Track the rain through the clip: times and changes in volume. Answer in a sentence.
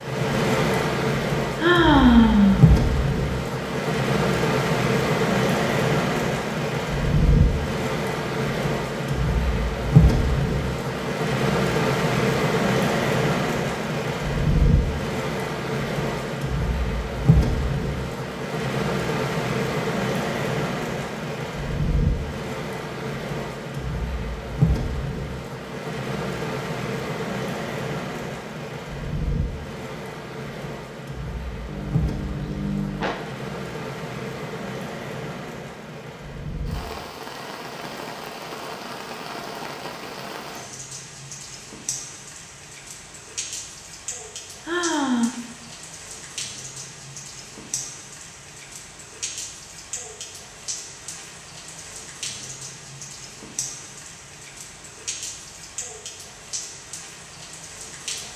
You can hear the rain from 0.0 to 58.3 s, getting quieter.